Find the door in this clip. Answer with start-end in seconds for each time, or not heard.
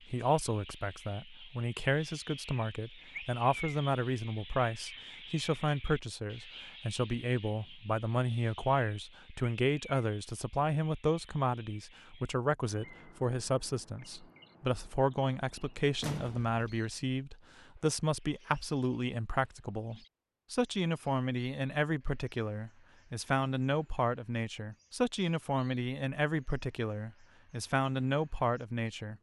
16.0-16.8.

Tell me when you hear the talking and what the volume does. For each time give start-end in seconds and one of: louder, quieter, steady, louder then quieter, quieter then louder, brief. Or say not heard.
0.1-29.1 steady.